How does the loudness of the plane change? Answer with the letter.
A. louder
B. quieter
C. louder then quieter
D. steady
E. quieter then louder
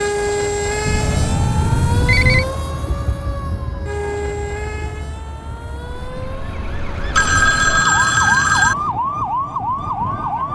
B.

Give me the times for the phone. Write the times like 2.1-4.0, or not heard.
0.8-2.5, 7.1-8.8.